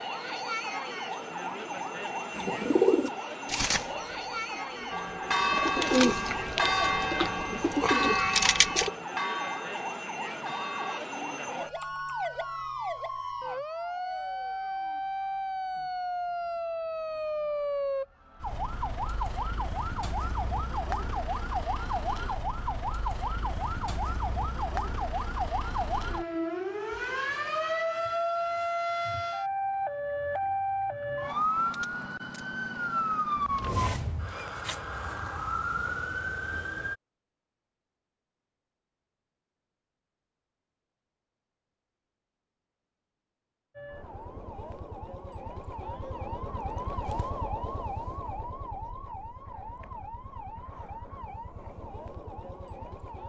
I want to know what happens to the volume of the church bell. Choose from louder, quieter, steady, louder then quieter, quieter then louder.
quieter.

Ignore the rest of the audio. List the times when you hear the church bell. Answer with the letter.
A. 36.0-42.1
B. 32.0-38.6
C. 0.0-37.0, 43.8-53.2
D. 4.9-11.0
D.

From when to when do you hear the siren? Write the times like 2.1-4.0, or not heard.
0.0-37.0, 43.8-53.2.